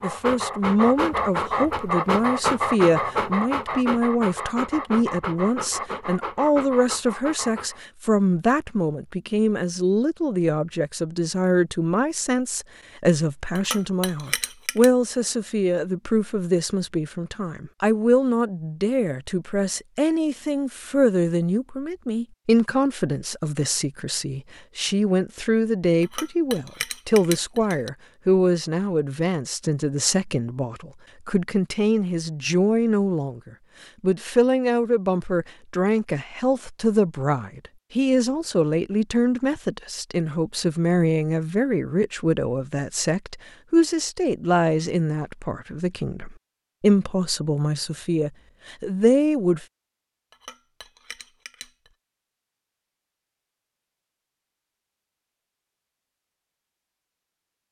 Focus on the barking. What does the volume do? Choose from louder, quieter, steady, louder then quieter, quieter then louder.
quieter.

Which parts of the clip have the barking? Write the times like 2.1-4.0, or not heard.
0.0-7.8.